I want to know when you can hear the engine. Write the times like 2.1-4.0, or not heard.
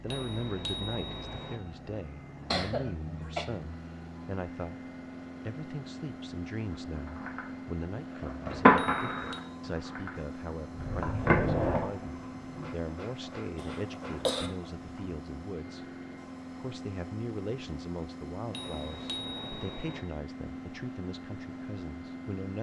0.0-22.5.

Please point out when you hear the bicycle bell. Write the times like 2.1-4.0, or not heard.
0.1-1.6, 8.8-9.4, 18.5-20.0.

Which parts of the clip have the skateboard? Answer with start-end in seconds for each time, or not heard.
7.0-15.2.